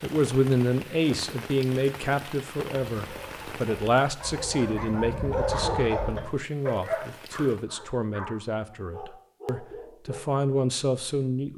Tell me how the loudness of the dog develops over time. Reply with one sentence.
The volume of the dog goes up, then down.